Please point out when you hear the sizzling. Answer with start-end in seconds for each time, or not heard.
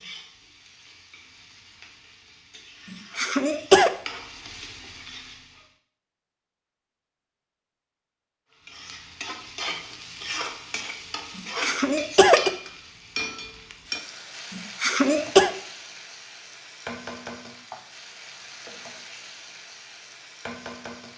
0.0-5.8, 8.6-21.1.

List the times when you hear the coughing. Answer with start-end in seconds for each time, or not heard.
2.9-3.9, 11.3-12.5, 14.5-15.5.